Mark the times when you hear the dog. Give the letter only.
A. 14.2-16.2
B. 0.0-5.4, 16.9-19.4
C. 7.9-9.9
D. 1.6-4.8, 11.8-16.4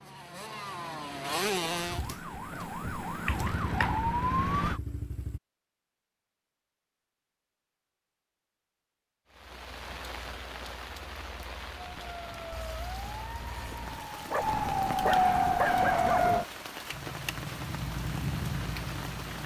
A.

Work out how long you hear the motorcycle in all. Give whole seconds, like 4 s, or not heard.
8 s.